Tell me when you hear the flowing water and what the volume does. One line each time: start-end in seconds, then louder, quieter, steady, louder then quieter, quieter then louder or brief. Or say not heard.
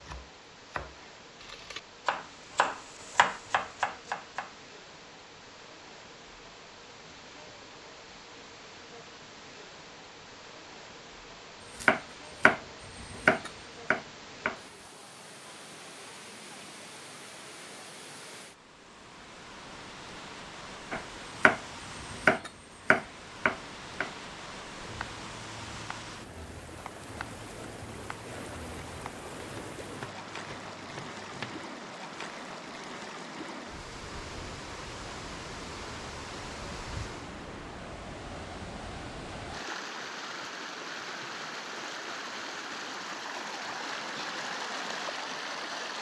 0.0-45.9 louder.